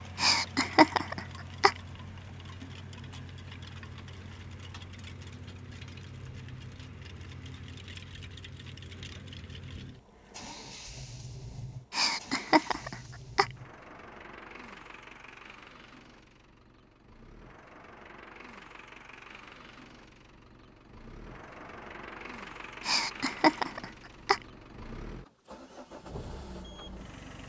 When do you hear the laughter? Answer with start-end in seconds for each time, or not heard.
0.1-1.8, 11.9-13.5, 22.9-24.4.